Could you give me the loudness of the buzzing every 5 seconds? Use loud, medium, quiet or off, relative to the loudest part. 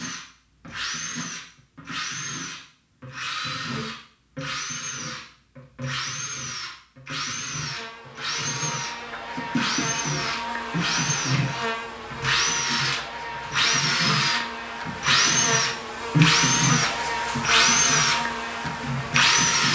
off, medium, loud, loud.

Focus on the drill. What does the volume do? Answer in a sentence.
The volume of the drill goes up.